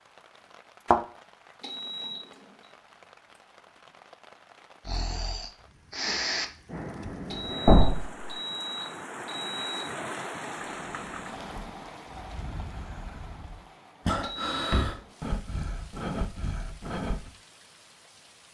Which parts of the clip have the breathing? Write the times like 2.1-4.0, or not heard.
4.8-7.8, 10.6-17.3.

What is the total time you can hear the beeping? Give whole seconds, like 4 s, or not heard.
5 s.